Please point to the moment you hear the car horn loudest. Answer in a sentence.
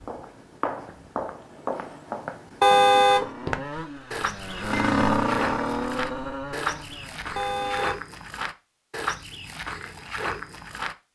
The loudest moment of the car horn is at 3 seconds.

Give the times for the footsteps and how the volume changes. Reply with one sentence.
You can hear the footsteps from 0.0 to 11.1 s, at a steady volume.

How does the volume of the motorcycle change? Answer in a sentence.
The loudness of the motorcycle goes up, then down.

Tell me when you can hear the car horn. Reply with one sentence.
You can hear the car horn from 2.6 to 3.3 s and from 7.3 to 8.0 s.